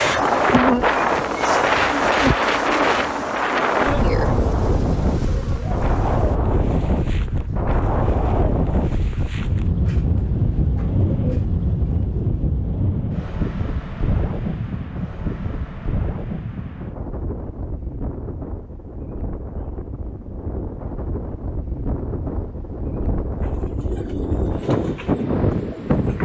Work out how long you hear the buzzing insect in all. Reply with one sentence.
You can hear the buzzing insect for 6 seconds altogether.